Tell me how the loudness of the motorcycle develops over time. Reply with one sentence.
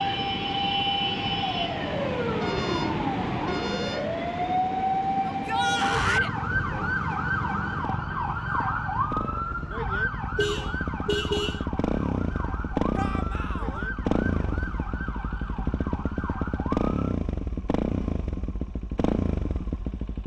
The volume of the motorcycle goes up.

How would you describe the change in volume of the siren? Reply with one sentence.
The loudness of the siren goes down.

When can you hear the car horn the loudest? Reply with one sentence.
The volume of the car horn peaks at 11 seconds.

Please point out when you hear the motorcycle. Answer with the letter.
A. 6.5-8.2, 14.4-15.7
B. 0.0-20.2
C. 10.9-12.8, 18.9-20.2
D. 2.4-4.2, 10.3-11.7
B.